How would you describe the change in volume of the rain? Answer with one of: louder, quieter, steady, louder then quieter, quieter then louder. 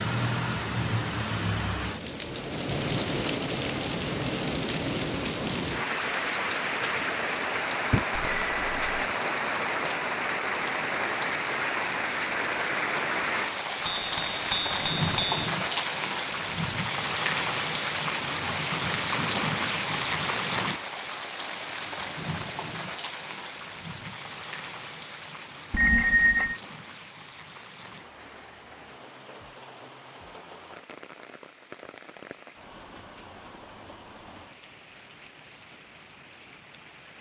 quieter.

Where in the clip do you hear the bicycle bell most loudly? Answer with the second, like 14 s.
26 s.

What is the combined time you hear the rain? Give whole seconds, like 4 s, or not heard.
37 s.